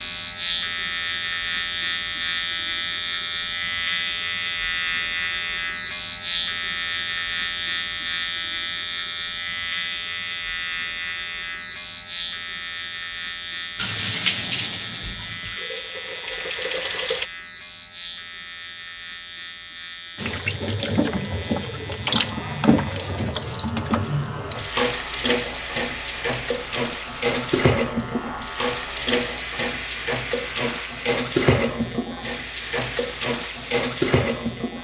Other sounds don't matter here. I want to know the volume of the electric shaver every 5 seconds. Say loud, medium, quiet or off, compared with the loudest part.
loud, loud, medium, medium, quiet, quiet, quiet.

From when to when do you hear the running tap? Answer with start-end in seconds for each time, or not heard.
13.8-17.2, 20.1-34.7.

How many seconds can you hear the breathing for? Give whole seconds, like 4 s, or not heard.
not heard.